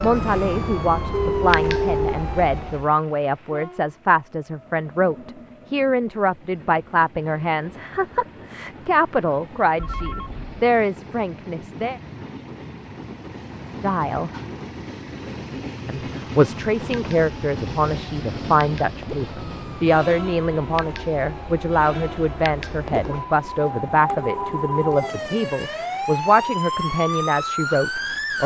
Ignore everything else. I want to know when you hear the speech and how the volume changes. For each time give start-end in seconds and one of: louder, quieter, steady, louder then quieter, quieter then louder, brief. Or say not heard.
0.0-12.0 steady
13.8-14.3 brief
15.8-28.4 steady.